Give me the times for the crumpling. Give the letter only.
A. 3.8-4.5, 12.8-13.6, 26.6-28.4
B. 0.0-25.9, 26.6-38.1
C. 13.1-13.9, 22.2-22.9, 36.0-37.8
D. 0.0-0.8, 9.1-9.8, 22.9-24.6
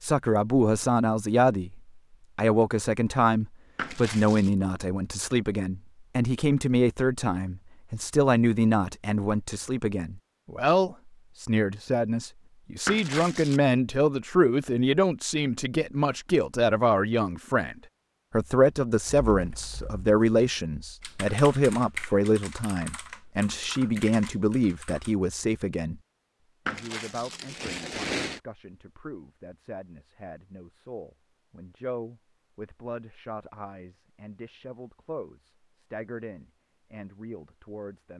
A.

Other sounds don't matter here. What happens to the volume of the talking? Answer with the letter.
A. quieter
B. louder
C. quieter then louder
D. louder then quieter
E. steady
A.